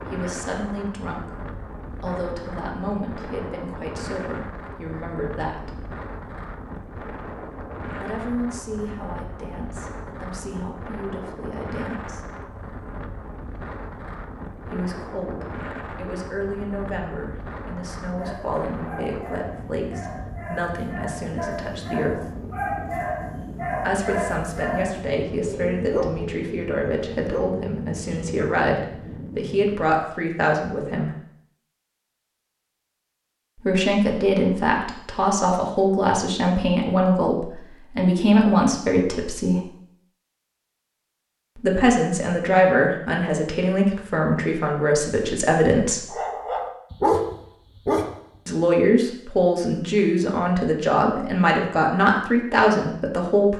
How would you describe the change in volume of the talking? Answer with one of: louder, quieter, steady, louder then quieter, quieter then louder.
louder.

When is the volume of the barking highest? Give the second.
47 s.